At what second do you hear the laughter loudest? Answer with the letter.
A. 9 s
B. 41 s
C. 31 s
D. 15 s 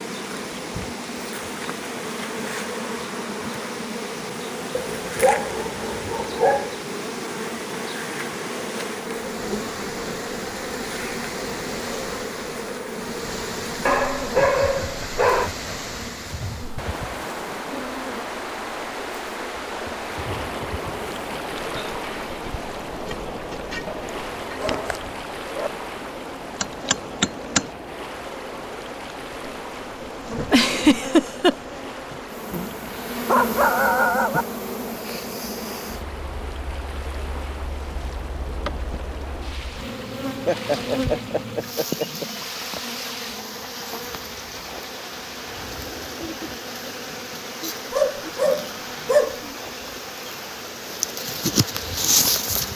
C.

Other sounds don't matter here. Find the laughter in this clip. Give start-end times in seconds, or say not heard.
14.3-15.7, 30.5-31.6, 40.5-42.2.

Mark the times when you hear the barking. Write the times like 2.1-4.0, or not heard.
4.8-6.8, 13.8-15.5, 23.9-25.7, 32.5-34.5, 47.9-49.5.